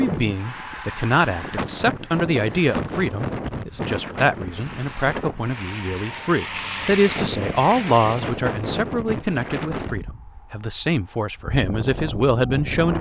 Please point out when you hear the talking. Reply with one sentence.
The talking can be heard from 0.0 to 12.9 s.